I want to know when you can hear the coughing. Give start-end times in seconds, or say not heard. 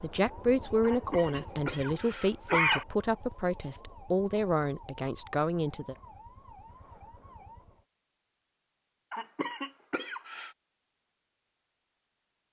0.8-2.9, 9.1-10.5.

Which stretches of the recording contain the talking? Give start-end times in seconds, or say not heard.
0.0-6.0.